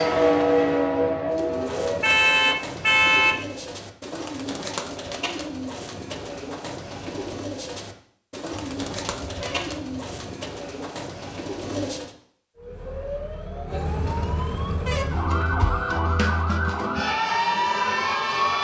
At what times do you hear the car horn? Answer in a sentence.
You can hear the car horn from 2.0 to 3.5 s, from 8.5 to 10.1 s and from 13.9 to 16.0 s.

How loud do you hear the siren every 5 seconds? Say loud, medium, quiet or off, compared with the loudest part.
loud, off, medium, loud.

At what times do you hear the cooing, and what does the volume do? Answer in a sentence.
The cooing can be heard from 1.3 to 12.1 s, at a steady volume.